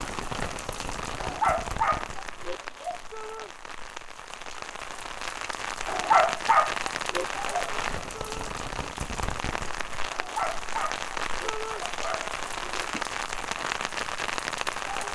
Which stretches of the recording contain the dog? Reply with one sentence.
You can hear the dog from 1.1 to 3.0 s, from 5.8 to 7.5 s and from 10.1 to 13.1 s.